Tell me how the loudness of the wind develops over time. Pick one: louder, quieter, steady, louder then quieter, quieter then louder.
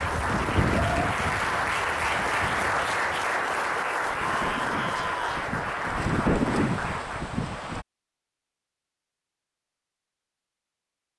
quieter then louder.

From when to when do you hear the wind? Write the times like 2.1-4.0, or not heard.
0.0-7.8.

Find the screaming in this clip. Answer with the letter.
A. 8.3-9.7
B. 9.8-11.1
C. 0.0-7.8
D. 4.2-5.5
D.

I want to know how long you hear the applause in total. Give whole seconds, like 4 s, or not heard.
7 s.